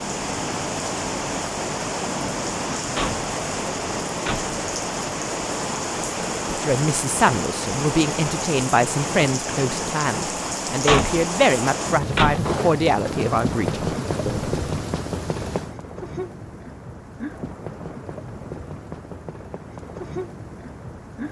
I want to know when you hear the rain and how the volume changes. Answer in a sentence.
You can hear the rain from 0.0 to 21.2 s, getting quieter.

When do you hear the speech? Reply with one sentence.
The speech can be heard from 6.6 to 14.6 s.